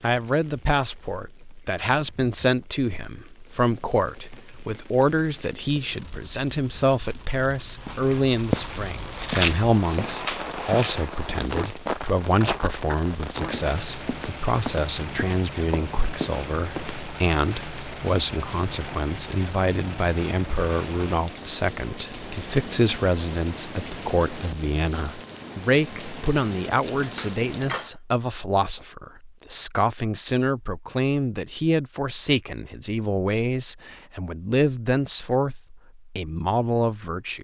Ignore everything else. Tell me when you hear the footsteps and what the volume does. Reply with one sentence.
You can hear the footsteps from 7.8 to 17.1 s, getting quieter.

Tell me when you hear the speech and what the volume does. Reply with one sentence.
The speech can be heard from 0.0 to 37.3 s, at a steady volume.